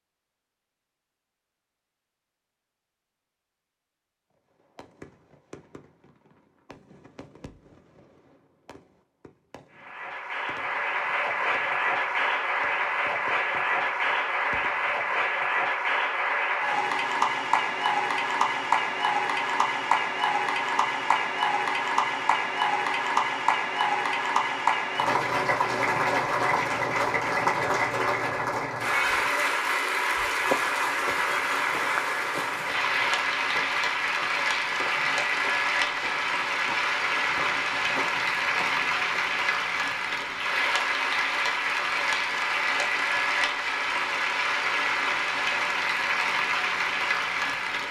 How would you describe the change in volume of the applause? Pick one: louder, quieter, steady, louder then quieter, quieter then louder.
steady.